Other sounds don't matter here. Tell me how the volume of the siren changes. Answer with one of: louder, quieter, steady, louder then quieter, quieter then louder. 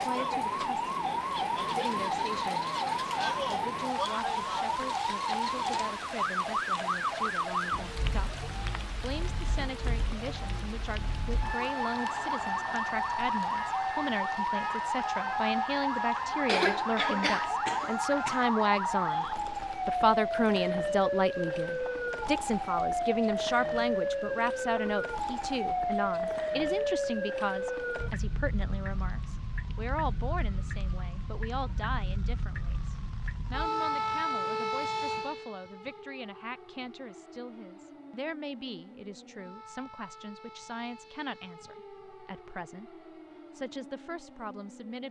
quieter.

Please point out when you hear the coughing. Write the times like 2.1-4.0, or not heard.
16.4-18.4.